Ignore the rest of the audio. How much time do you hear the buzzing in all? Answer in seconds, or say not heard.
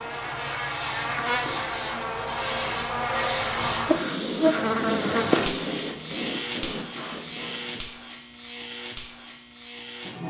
10 s.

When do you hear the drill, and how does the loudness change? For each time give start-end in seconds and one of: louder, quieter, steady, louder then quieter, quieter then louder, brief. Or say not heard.
not heard.